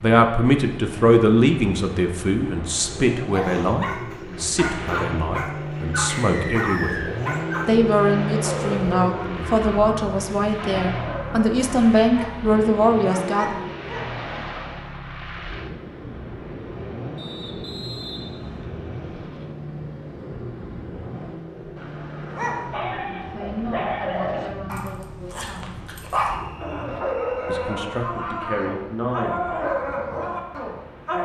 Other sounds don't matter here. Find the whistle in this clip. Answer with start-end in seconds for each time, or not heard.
6.0-7.1, 17.1-18.6, 26.4-27.6.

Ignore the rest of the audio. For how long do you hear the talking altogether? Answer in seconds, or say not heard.
18 s.